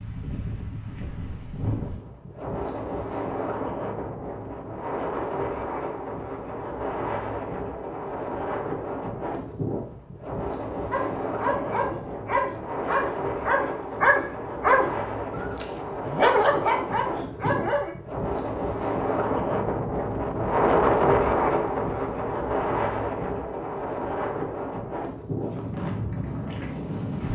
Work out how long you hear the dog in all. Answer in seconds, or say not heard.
7 s.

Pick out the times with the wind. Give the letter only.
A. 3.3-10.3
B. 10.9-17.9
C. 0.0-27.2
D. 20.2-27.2
C.